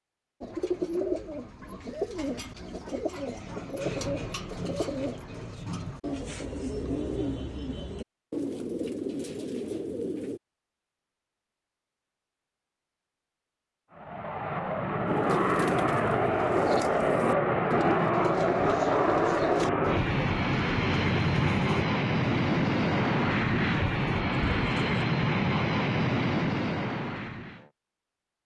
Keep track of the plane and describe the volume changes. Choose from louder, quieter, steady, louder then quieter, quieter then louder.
steady.